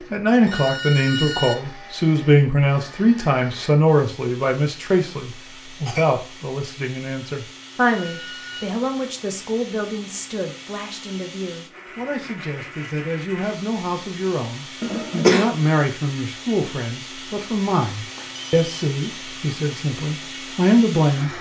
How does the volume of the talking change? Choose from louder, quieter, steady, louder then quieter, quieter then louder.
quieter then louder.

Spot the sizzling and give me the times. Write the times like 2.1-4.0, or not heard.
not heard.